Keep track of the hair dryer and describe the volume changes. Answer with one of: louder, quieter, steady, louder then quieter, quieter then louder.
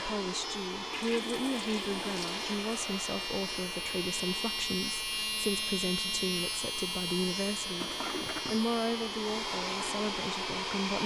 quieter then louder.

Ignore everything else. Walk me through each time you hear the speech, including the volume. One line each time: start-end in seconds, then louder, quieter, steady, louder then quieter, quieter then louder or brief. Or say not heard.
0.0-11.0 steady.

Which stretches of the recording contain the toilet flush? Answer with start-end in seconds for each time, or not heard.
0.9-2.6, 7.8-8.7.